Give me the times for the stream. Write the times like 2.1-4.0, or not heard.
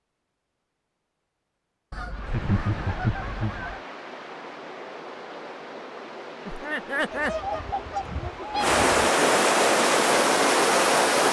2.1-11.2.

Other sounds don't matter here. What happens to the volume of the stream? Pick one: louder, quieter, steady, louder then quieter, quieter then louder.
louder.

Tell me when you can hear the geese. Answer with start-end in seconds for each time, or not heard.
1.9-3.9, 7.1-8.8.